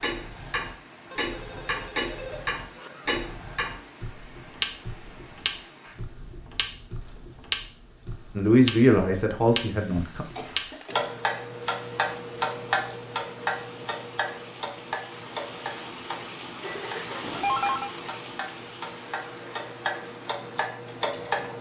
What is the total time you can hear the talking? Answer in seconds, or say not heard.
2 s.